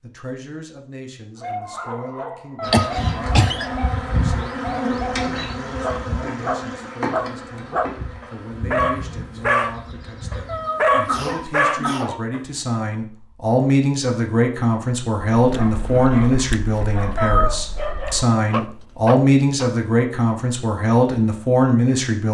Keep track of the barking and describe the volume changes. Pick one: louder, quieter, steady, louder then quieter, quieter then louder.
louder then quieter.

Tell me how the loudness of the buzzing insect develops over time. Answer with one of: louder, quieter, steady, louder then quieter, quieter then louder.
quieter.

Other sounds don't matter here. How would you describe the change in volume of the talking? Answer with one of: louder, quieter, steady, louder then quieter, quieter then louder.
louder.